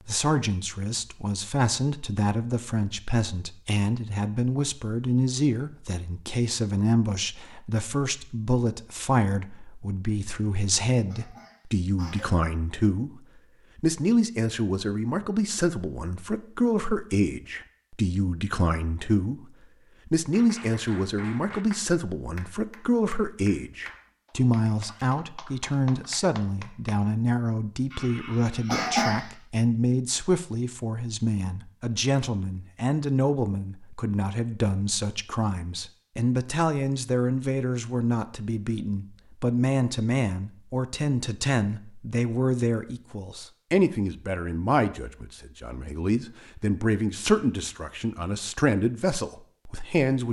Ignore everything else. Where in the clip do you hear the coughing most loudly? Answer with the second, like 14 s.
29 s.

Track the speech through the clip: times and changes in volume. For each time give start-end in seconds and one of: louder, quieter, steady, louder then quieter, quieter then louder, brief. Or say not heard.
0.1-19.4 steady
20.1-50.2 steady.